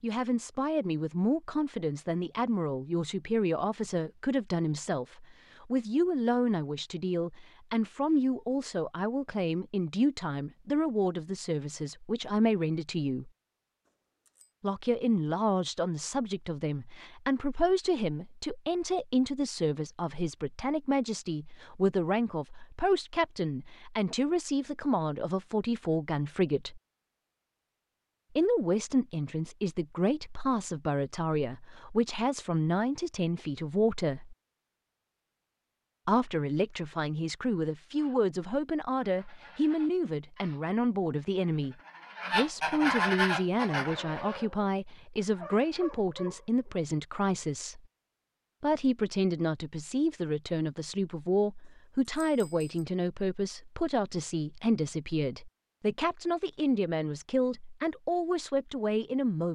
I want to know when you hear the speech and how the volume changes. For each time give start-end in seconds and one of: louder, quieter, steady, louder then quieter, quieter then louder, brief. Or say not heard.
0.0-13.3 steady
14.6-26.8 steady
28.4-34.4 steady
36.0-47.8 steady
48.6-59.5 steady.